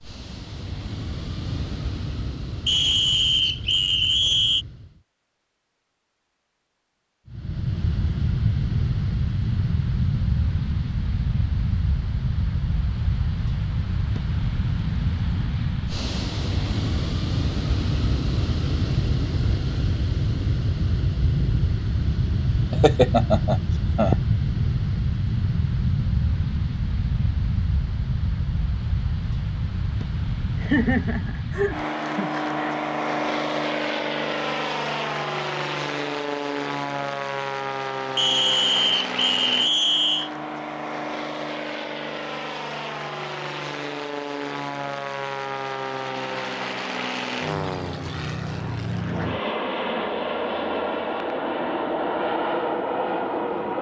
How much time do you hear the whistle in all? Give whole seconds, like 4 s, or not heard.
4 s.